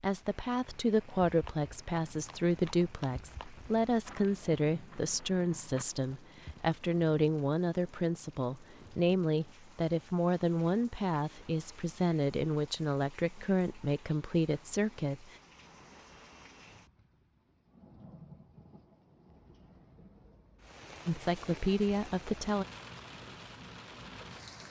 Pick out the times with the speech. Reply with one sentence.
You can hear the speech from 0.0 to 15.2 s and from 21.1 to 22.6 s.